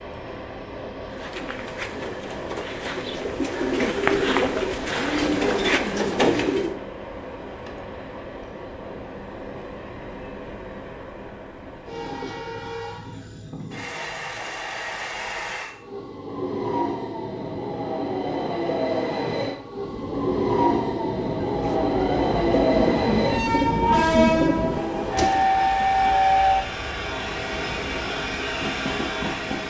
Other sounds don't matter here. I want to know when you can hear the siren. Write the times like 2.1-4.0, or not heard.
not heard.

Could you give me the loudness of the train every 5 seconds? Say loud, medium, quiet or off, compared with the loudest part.
quiet, quiet, quiet, medium, loud, loud.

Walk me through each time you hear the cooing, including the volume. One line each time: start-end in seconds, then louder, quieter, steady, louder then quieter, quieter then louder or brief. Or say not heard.
1.0-6.8 louder
19.8-25.5 louder.